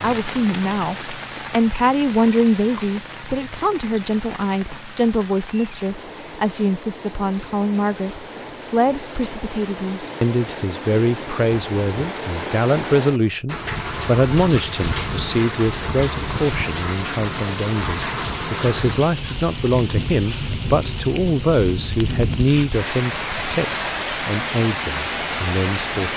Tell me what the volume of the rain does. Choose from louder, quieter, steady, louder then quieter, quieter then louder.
louder.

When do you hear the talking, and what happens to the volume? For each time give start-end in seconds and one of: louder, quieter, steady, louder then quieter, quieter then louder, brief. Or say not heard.
0.0-26.1 steady.